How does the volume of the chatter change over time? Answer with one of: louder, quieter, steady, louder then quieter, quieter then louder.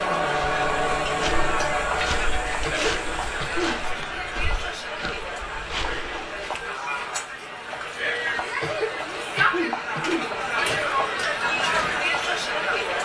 quieter then louder.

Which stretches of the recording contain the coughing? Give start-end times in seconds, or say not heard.
2.6-4.0, 8.6-11.0.